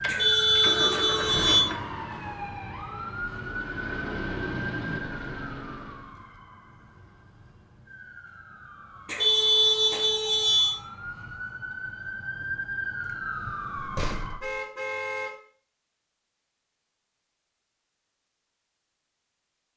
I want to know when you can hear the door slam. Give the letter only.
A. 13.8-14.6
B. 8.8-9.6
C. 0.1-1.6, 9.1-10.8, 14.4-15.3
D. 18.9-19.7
A.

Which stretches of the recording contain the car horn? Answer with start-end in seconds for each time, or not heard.
0.1-1.6, 9.1-10.8, 14.4-15.3.